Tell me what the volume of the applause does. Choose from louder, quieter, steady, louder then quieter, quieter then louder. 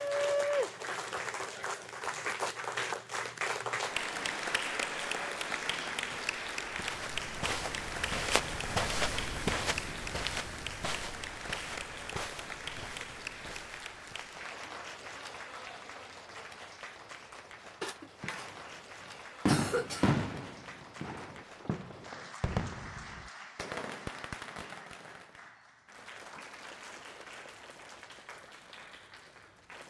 quieter.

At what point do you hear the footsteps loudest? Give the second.
9 s.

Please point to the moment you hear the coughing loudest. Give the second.
20 s.